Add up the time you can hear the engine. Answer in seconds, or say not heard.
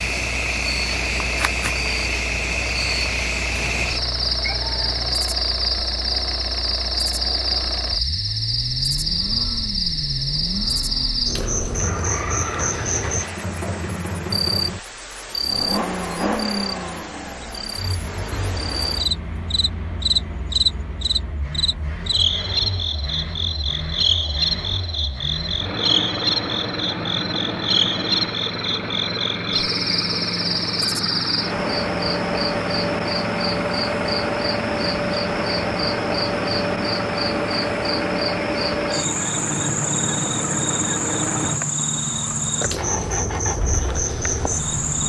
45 s.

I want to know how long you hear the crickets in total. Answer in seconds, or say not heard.
45 s.